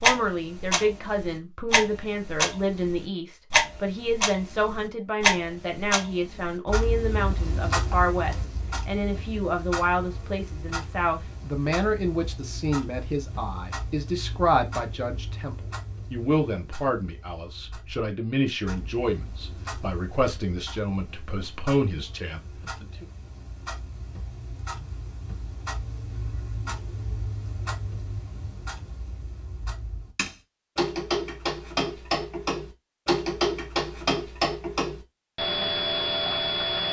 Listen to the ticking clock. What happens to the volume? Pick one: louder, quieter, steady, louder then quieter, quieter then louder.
quieter then louder.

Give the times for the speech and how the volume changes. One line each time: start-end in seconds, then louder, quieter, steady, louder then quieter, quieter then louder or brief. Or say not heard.
0.0-23.1 steady.